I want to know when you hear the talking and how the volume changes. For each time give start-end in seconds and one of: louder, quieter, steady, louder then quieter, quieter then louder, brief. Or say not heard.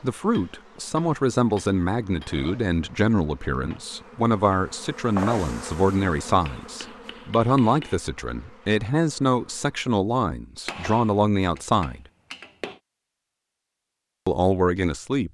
0.0-12.0 steady
14.2-15.2 brief.